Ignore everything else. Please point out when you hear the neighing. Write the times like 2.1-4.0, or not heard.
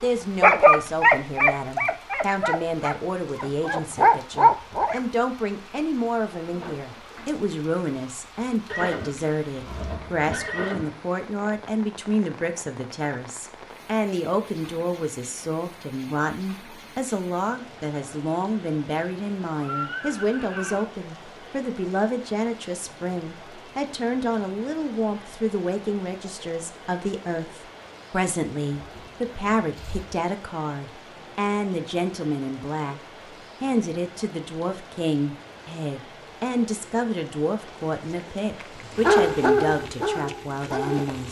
8.7-10.9, 19.6-20.9, 28.8-30.1.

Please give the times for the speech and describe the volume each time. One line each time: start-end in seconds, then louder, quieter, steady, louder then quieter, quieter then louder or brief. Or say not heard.
0.0-33.0 steady
33.6-41.2 steady.